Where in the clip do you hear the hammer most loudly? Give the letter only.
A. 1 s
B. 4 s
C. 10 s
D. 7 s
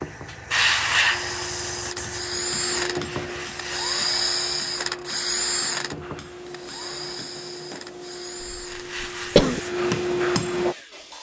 C.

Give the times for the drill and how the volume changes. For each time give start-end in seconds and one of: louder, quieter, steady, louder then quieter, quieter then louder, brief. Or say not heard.
0.0-11.1 louder then quieter.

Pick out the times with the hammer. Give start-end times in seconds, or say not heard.
1.1-10.8.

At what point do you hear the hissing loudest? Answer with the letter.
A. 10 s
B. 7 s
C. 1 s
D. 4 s
C.